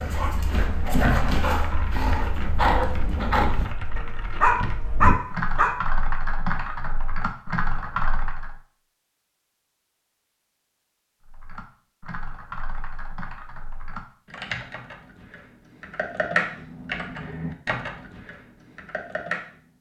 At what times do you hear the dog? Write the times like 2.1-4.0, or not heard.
0.0-5.7.